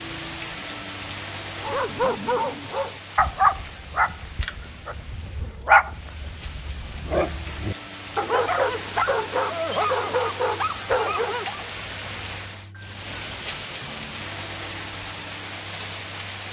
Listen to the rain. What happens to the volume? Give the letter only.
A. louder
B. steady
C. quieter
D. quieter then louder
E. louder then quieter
D.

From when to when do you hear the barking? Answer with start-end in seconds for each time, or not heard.
1.6-11.7.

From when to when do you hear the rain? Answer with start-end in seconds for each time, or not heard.
0.0-16.4.